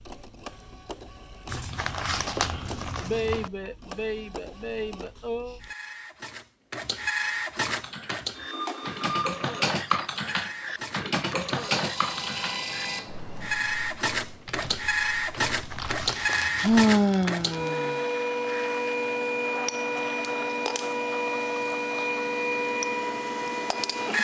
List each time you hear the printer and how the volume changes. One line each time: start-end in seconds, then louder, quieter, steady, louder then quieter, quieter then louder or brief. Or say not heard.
0.0-24.1 louder.